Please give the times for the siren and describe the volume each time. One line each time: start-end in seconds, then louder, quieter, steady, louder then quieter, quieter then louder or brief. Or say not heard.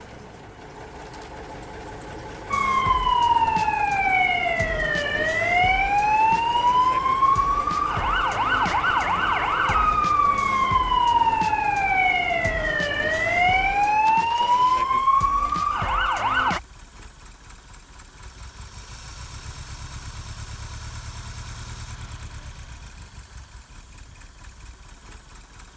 2.5-16.6 steady.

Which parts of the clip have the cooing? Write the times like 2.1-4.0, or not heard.
not heard.